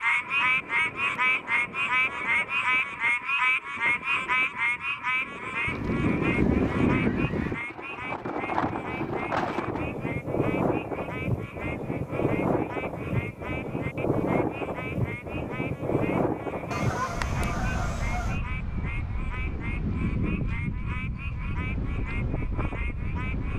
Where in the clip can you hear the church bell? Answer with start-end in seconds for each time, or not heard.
not heard.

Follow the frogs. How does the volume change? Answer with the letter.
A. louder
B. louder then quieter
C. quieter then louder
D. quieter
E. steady
D.